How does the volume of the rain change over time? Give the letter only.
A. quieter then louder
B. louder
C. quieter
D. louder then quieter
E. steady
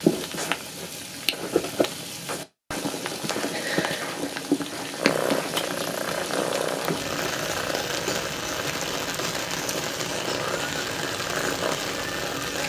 E.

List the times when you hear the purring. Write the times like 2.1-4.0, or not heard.
5.0-12.6.